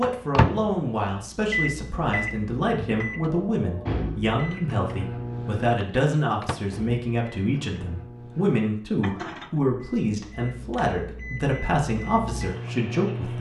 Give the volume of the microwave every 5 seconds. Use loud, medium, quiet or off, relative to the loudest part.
loud, medium, medium.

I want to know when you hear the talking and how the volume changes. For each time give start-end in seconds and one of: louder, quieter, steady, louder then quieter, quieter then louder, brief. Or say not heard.
0.0-13.3 steady.